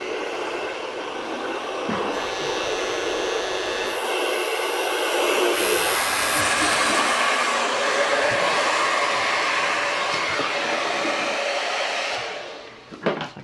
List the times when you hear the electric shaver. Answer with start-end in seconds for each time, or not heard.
2.1-6.5.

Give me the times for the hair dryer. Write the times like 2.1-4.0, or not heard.
0.0-13.3.